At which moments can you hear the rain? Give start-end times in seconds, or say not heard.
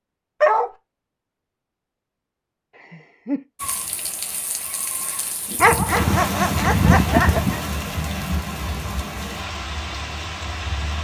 3.5-10.9.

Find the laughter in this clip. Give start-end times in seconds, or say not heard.
2.8-3.5, 6.9-7.6.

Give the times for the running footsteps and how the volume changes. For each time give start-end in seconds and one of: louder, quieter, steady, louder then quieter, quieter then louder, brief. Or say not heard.
not heard.